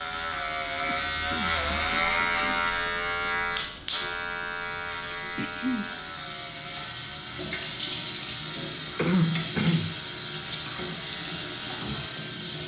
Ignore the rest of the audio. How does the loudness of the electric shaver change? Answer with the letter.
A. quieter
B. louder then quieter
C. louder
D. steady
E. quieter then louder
A.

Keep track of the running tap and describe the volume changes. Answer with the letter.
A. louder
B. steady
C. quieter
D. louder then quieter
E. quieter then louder
A.